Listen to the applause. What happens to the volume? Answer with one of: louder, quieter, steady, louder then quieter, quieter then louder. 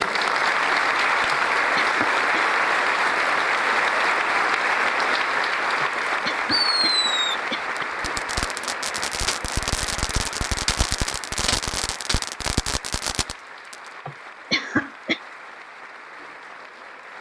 quieter.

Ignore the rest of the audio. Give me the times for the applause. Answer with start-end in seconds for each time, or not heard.
0.0-17.1.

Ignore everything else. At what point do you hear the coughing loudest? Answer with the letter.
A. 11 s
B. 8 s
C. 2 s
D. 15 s
D.